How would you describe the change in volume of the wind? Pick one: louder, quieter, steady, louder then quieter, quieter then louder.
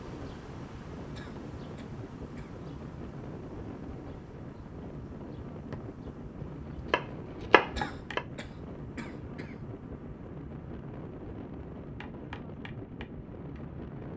steady.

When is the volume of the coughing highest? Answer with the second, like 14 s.
8 s.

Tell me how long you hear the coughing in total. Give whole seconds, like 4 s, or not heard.
3 s.